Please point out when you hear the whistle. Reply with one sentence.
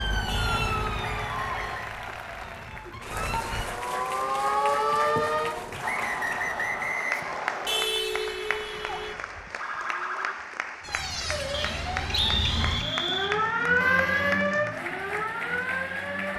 You can hear the whistle from 0.9 to 1.9 s, from 5.8 to 7.8 s and from 11.5 to 13.3 s.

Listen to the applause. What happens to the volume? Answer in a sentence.
The loudness of the applause stays about the same.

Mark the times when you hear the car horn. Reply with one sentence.
The car horn can be heard from 0.2 to 1.8 s, from 7.7 to 9.2 s and from 13.8 to 14.4 s.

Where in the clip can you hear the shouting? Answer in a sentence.
The shouting can't be heard in this clip.